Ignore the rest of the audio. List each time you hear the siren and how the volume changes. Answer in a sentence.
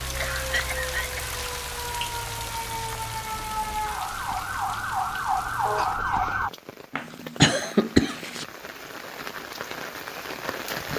The siren can be heard from 0.0 to 6.5 s, getting louder.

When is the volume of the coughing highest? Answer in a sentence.
The volume of the coughing peaks at 8 seconds.